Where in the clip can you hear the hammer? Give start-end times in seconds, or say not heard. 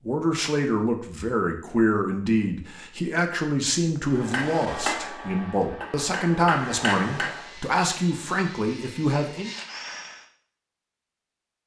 4.0-7.5.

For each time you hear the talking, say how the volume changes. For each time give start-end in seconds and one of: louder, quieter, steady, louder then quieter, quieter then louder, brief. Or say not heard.
0.1-9.5 steady.